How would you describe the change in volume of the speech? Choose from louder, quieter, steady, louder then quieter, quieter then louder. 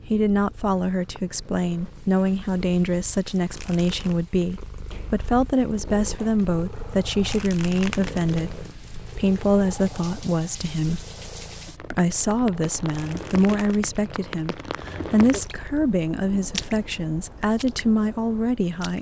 steady.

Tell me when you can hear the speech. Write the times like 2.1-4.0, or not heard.
0.1-11.1, 11.9-18.9.